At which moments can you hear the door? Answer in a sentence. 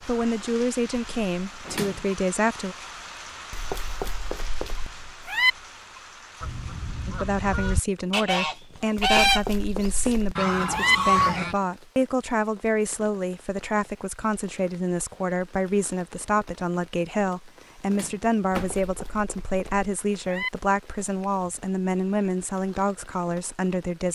The door can be heard from 1.6 to 2.1 s and from 17.9 to 18.9 s.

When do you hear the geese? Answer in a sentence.
The geese can be heard from 6.4 to 11.6 s.